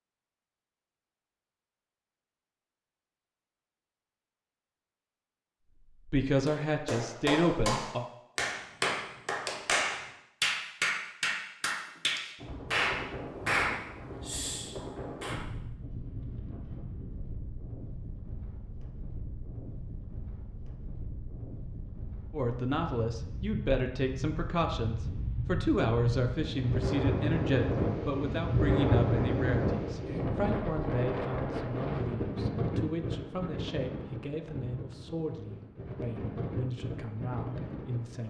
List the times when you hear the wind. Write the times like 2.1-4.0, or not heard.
12.3-38.2.